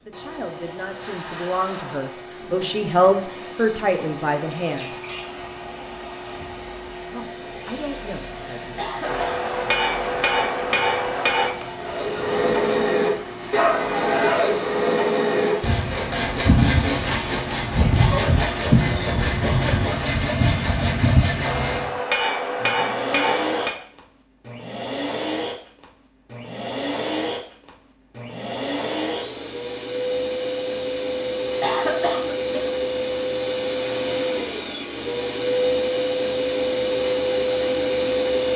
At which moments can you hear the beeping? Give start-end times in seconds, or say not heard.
not heard.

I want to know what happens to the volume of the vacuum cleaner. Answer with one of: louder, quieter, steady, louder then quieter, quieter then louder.
louder.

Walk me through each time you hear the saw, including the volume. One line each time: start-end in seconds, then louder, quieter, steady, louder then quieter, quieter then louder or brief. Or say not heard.
11.8-21.9 steady.